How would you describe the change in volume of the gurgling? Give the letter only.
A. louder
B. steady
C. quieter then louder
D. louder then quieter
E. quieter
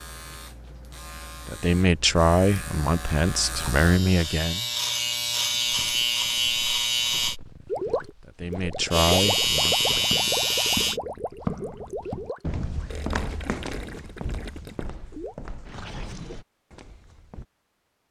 E.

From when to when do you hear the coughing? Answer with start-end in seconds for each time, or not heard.
not heard.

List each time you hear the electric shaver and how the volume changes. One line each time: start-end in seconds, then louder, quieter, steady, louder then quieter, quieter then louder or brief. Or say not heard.
0.0-7.3 louder
8.9-11.0 brief.